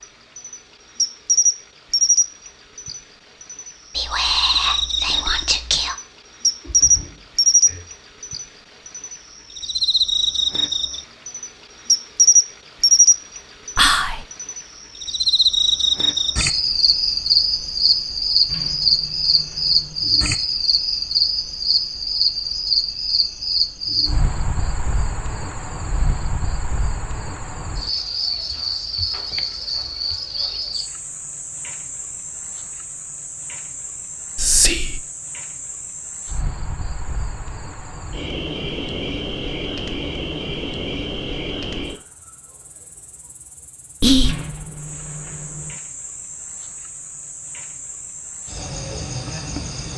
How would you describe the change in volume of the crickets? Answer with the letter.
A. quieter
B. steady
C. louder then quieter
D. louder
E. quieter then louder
A.